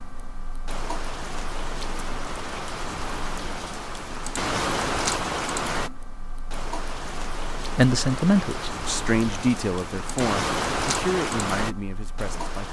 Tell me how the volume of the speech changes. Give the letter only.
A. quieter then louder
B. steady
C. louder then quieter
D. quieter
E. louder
D.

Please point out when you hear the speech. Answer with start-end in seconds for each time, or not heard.
7.8-12.6.